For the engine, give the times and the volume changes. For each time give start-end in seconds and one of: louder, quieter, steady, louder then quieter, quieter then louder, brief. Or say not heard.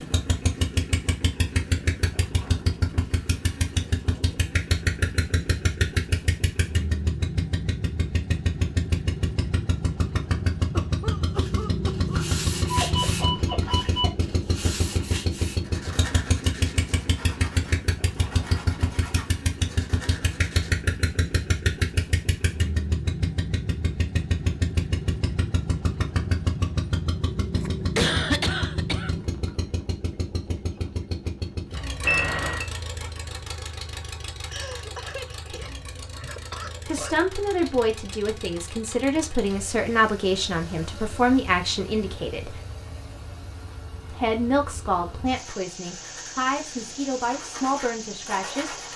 0.0-48.9 quieter.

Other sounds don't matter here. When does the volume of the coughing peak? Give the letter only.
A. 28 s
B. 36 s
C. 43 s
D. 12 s
A.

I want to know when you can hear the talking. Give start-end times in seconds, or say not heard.
36.9-42.6, 44.1-48.8.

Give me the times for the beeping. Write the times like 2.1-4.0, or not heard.
12.1-14.1, 32.0-32.6.